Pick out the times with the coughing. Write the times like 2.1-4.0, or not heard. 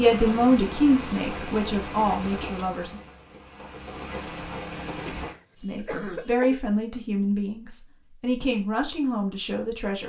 5.2-6.6.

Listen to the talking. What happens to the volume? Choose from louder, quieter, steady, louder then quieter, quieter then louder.
quieter.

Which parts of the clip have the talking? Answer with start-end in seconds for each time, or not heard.
0.0-3.0, 5.5-10.0.